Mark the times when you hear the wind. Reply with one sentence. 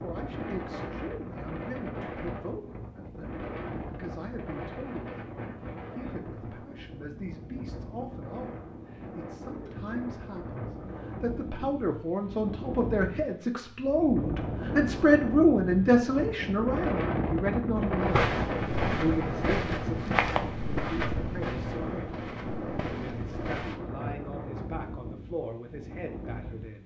The wind can be heard from 0.0 to 26.8 s.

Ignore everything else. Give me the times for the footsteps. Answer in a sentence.
You can hear the footsteps from 18.1 to 23.8 s.